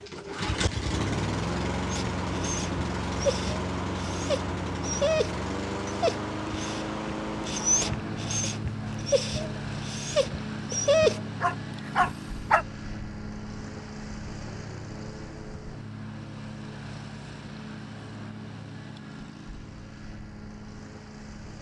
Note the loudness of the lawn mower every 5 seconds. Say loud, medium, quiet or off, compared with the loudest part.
loud, loud, medium, medium, quiet.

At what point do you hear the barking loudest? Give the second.
11 s.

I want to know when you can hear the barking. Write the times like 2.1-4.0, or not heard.
1.9-12.7.